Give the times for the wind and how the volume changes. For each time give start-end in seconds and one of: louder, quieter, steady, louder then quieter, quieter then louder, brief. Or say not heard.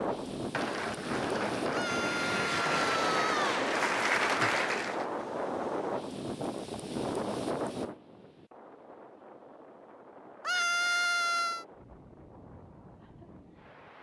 0.0-13.9 quieter.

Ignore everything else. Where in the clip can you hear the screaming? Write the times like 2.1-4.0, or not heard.
1.7-3.7, 10.4-11.7.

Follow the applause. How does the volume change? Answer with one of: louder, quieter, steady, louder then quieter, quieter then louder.
louder.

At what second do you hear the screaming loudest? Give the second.
11 s.